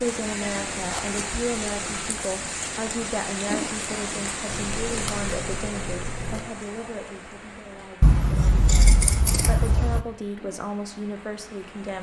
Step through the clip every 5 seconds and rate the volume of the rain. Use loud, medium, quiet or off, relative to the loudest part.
loud, medium, quiet.